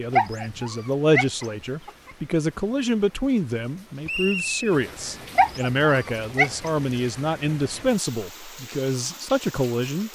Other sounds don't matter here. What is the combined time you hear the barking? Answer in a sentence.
The barking can be heard for 3 seconds in total.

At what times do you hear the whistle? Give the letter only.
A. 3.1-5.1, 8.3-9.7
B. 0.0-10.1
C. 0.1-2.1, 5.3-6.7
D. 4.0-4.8
D.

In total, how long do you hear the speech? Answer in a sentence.
The speech can be heard for 10 seconds in total.